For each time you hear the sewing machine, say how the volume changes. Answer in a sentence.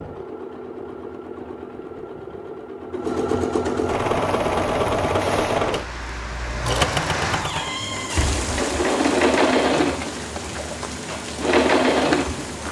The sewing machine can be heard from 0.0 to 12.6 s, getting louder.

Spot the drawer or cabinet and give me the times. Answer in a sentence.
The drawer or cabinet can be heard from 7.3 to 8.2 s.